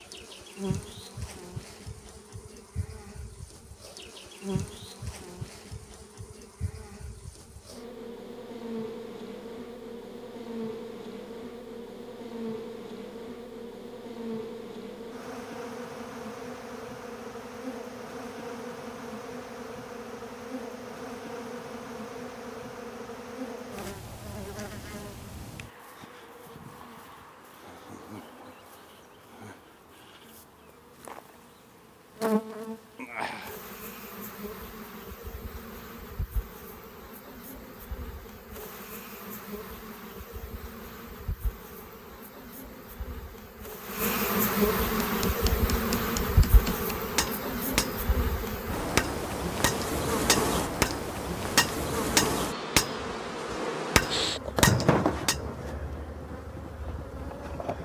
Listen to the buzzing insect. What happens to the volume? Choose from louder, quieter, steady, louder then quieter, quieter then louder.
louder.